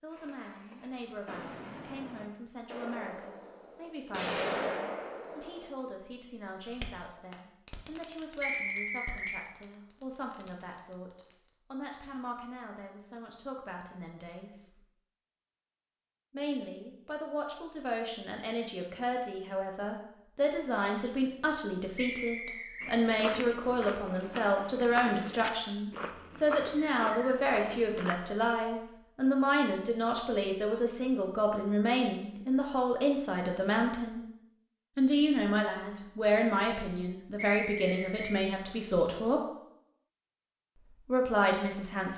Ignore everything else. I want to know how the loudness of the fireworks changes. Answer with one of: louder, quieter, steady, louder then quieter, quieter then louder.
louder then quieter.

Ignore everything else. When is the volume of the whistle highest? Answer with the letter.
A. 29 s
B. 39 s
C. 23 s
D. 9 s
D.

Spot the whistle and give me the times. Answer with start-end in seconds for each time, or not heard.
8.4-9.4, 21.9-22.9, 37.5-38.4.